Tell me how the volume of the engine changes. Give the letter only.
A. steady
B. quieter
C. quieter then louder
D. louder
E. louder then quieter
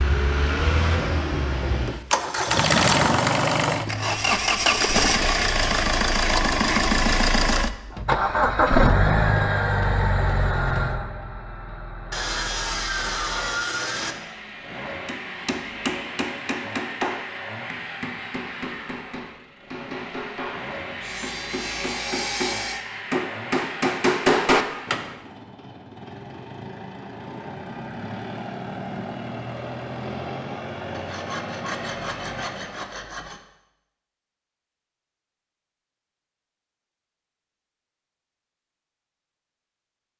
B.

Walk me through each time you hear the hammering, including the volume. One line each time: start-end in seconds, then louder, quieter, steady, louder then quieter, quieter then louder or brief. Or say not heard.
15.1-25.1 quieter then louder.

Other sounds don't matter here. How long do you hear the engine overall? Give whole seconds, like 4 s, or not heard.
33 s.